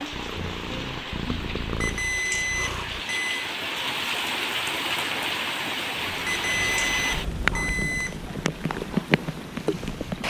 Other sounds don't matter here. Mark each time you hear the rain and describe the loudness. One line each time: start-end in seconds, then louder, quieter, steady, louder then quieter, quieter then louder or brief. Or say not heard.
0.0-10.2 louder.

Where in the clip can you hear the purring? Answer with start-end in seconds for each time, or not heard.
0.0-3.0, 6.0-10.2.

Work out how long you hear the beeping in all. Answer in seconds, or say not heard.
4 s.